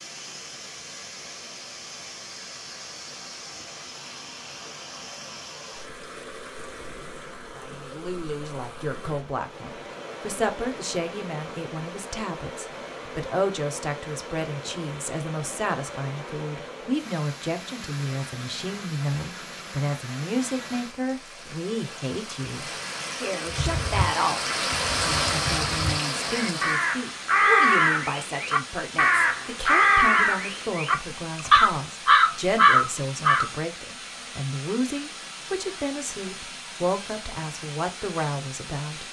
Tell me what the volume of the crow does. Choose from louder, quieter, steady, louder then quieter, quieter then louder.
louder.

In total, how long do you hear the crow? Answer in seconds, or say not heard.
10 s.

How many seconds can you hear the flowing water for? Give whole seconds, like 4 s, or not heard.
39 s.